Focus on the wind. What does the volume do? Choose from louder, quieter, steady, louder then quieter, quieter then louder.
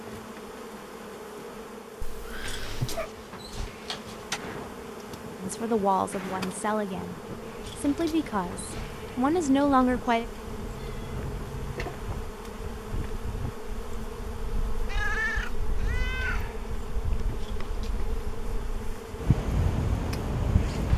louder.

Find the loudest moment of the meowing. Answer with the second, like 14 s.
15 s.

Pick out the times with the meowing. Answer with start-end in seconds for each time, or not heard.
2.0-3.1, 10.7-12.1, 14.8-16.6.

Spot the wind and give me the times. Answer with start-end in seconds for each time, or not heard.
4.3-20.9.